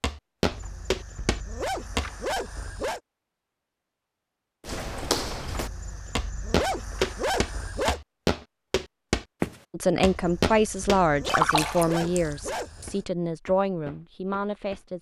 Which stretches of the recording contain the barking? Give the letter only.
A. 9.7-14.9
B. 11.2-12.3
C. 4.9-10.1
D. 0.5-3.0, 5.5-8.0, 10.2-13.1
D.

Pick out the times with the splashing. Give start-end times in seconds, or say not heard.
11.2-12.3.